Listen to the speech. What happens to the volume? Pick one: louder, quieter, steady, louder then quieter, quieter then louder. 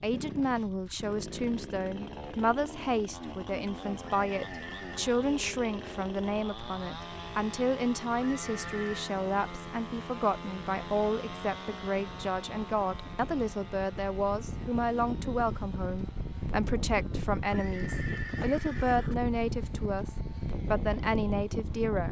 steady.